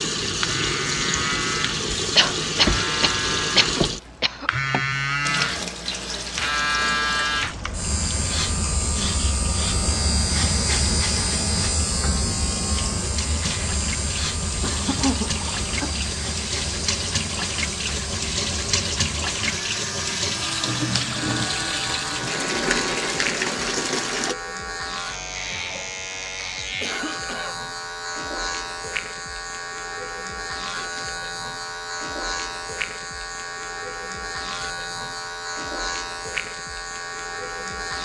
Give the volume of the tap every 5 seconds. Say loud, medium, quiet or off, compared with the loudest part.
loud, medium, medium, loud, loud, off, off, off.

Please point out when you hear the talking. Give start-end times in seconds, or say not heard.
not heard.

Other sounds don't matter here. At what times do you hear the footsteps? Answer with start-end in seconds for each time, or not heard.
not heard.